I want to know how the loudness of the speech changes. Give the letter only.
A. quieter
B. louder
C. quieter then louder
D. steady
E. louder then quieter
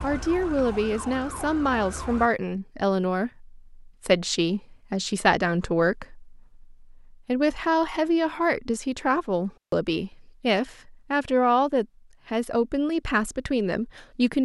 D.